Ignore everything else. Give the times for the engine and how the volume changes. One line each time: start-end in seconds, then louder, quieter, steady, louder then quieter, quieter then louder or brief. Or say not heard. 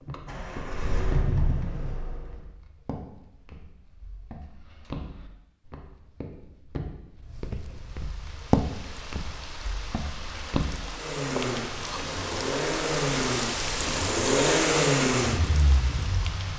0.0-2.5 brief
10.9-16.5 louder then quieter.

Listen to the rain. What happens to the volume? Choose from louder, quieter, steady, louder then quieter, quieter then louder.
louder then quieter.